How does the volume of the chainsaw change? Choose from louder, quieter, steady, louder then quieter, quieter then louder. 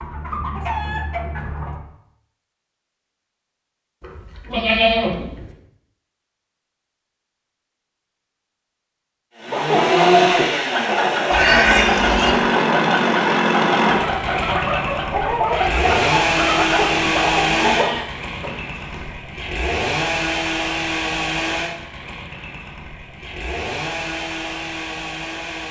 quieter.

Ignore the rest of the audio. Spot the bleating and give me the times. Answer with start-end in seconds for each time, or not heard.
4.0-5.5, 11.3-12.3, 17.6-19.1.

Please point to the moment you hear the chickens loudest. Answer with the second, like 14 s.
10 s.